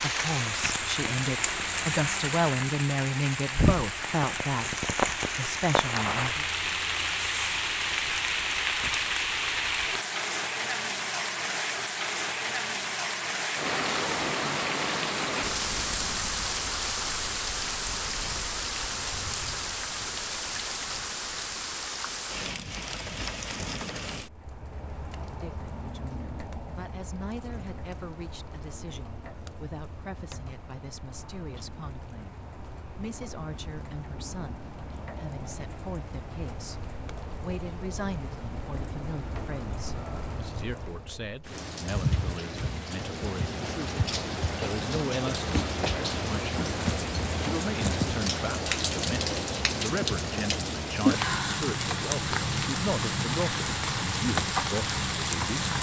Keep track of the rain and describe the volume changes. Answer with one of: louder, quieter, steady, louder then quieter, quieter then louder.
quieter then louder.